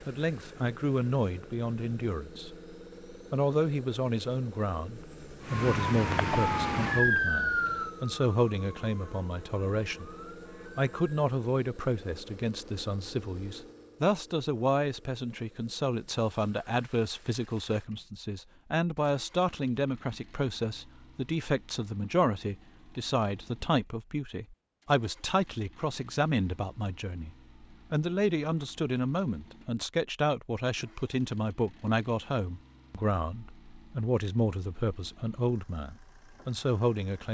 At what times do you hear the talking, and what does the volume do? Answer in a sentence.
You can hear the talking briefly from 0.1 to 2.5 s; and from 3.3 to 37.2 s, at a steady volume.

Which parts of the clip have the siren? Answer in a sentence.
The siren can be heard from 5.4 to 11.2 s.